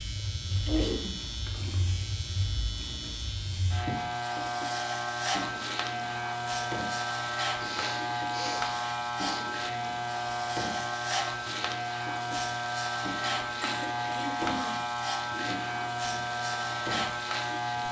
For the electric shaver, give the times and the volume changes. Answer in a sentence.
The electric shaver can be heard from 0.0 to 17.8 s, getting louder.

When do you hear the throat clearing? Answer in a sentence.
You can hear the throat clearing from 0.7 to 1.2 s, from 7.6 to 9.4 s and from 13.6 to 15.5 s.